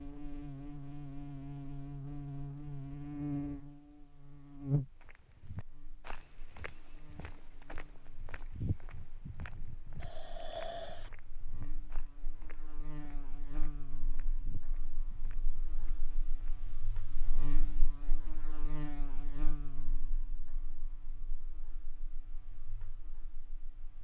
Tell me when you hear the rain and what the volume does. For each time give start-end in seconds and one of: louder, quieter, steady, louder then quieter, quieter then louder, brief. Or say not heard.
not heard.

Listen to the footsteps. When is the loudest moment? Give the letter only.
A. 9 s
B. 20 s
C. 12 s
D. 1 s
A.